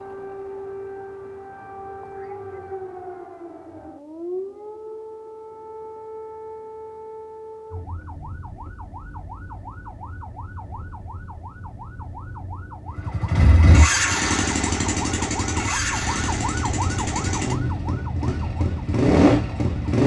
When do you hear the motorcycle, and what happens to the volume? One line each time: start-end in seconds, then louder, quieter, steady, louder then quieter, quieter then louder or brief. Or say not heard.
12.9-20.0 quieter then louder.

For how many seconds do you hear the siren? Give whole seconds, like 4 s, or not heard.
20 s.